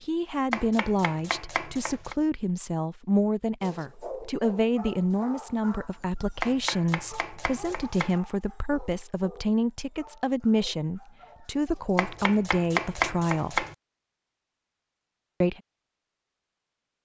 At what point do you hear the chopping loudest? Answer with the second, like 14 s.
13 s.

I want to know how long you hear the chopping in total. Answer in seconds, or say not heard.
5 s.